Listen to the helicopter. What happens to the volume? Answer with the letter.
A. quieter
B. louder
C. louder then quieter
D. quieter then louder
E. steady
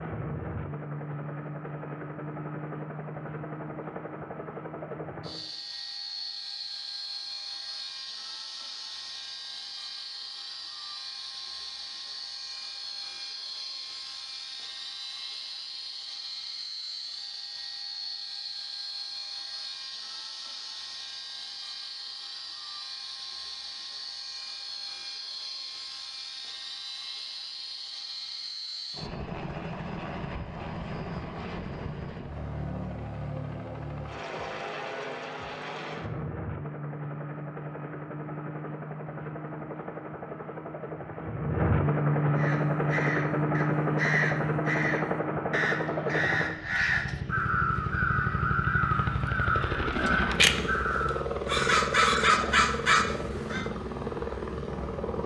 B.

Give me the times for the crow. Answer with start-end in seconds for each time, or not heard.
42.4-53.7.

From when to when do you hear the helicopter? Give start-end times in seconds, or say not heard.
0.0-55.2.